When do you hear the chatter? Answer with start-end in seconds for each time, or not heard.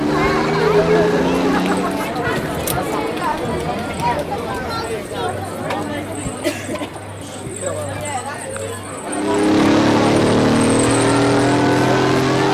0.0-12.4.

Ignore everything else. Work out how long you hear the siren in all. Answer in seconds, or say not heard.
not heard.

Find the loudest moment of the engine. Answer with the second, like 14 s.
10 s.